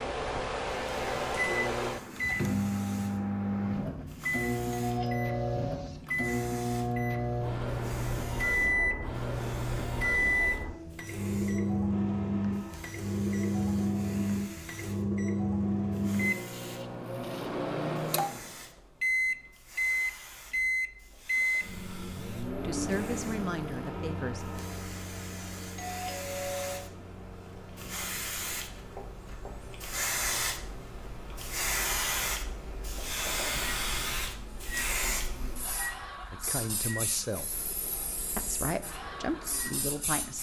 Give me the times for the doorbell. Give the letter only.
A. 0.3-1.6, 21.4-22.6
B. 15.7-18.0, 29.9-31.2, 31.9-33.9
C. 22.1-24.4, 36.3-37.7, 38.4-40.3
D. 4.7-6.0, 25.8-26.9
D.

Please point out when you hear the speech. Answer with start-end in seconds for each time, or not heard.
22.1-24.4, 36.3-37.7, 38.4-40.3.